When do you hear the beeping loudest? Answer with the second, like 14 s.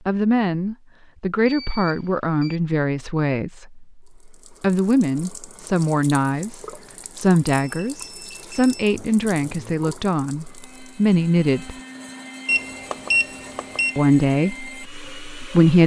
13 s.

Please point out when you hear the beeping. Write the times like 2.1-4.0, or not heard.
1.4-2.6, 6.8-8.8, 12.4-13.9.